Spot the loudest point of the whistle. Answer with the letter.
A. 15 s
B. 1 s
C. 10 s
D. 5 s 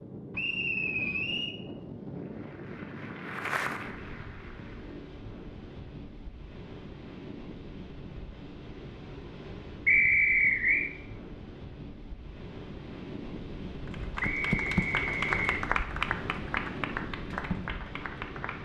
C.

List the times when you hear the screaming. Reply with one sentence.
The screaming can't be heard in this clip.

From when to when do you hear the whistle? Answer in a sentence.
The whistle can be heard from 0.3 to 1.5 s, from 9.8 to 10.8 s and from 14.2 to 15.6 s.